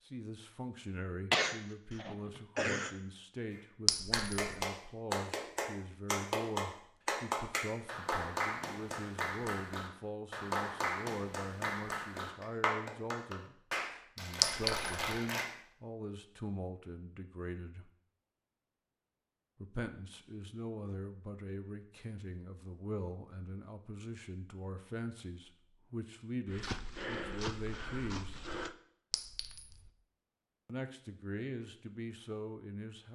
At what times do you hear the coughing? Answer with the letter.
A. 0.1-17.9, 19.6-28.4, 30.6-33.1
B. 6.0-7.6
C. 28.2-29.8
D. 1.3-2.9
D.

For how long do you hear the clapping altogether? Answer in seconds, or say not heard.
12 s.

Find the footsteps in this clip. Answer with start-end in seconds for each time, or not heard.
26.4-28.8.